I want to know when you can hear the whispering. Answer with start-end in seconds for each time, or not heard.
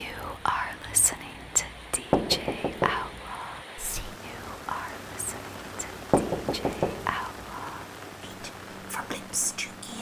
0.0-9.9.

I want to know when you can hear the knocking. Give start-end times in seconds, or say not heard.
2.1-3.2, 6.1-7.2.